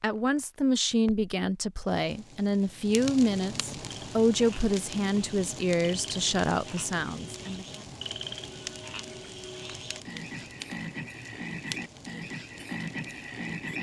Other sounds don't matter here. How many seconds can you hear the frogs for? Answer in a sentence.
The frogs can be heard for 10 seconds in total.